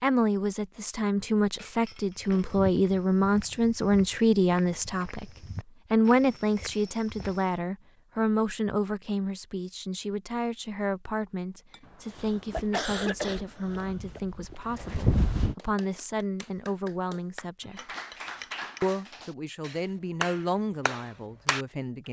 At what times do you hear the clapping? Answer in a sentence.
The clapping can be heard from 15.6 to 21.6 s.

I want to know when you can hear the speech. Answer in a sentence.
The speech can be heard from 0.0 to 5.3 s, from 5.9 to 17.9 s and from 18.8 to 22.0 s.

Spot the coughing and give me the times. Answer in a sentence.
The coughing can be heard from 11.8 to 14.2 s.